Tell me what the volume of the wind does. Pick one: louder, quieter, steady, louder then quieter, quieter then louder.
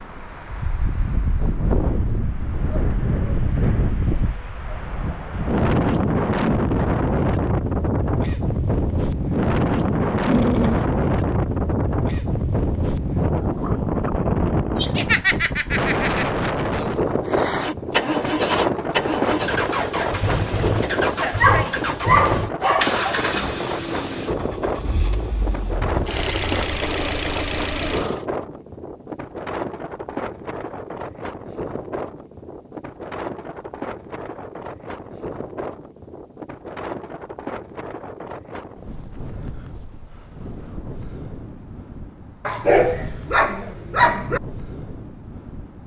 quieter.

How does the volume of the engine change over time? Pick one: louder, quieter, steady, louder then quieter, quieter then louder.
quieter then louder.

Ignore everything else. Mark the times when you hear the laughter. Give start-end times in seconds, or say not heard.
14.8-16.2.